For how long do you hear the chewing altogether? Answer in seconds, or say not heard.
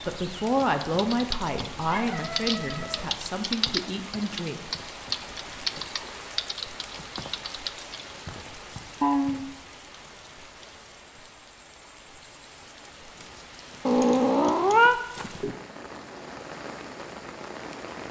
not heard.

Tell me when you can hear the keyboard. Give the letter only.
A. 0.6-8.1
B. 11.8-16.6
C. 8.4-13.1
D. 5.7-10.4
A.